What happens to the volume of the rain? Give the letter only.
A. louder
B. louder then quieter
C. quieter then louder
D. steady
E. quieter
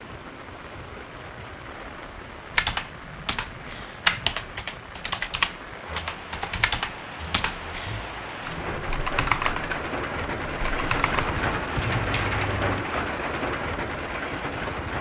A.